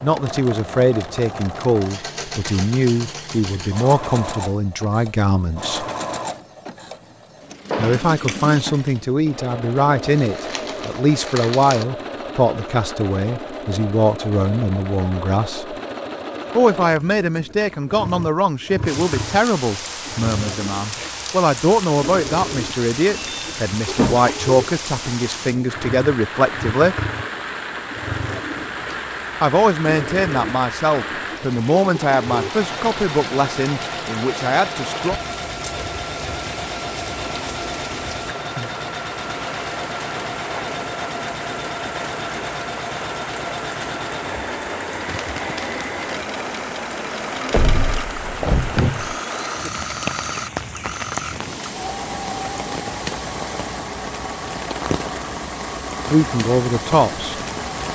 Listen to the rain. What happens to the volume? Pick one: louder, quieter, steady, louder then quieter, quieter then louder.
steady.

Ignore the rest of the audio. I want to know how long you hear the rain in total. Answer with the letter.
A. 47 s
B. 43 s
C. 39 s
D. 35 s
C.